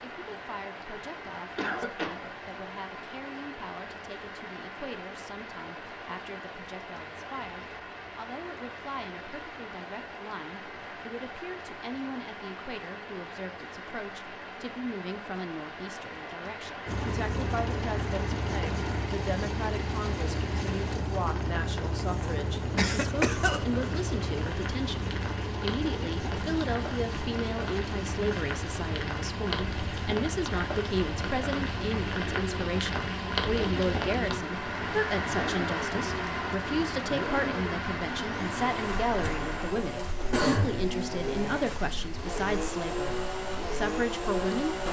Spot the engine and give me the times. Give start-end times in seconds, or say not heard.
16.9-44.8.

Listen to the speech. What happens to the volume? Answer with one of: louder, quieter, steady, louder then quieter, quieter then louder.
louder.